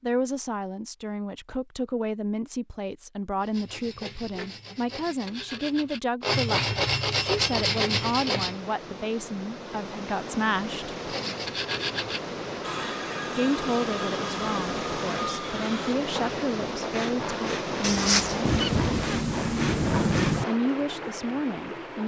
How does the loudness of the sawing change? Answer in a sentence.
The volume of the sawing goes up, then down.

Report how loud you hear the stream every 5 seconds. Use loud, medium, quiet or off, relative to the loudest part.
off, medium, loud, loud, loud.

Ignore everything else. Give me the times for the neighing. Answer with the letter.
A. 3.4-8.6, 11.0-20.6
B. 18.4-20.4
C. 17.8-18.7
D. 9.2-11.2
C.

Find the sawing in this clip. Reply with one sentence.
You can hear the sawing from 3.4 to 8.6 s and from 11.0 to 20.6 s.